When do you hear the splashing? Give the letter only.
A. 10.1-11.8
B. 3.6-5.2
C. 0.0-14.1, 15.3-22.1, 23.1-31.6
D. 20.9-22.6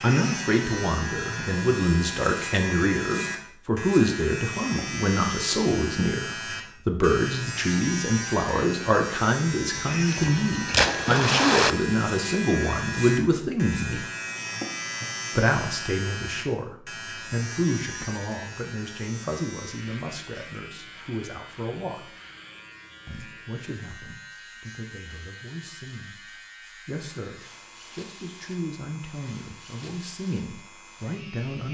A.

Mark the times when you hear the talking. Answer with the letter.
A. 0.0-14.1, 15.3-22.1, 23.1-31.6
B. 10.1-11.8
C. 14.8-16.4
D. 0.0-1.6
A.